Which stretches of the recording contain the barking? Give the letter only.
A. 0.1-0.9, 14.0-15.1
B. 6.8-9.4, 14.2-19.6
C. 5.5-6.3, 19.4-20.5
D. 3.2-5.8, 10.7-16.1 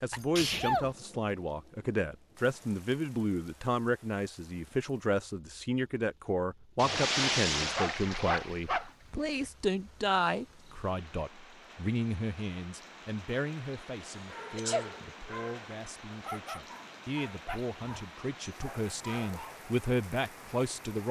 B.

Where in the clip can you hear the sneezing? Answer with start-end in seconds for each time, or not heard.
0.1-0.9, 14.0-15.1.